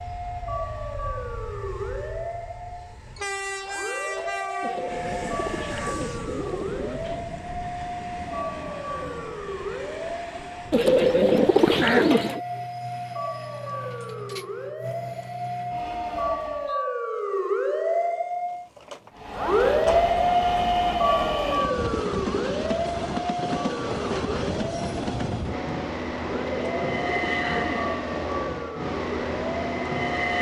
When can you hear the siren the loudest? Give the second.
20 s.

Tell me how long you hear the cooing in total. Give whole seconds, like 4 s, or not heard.
6 s.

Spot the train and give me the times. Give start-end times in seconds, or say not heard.
0.0-16.8, 19.1-30.3.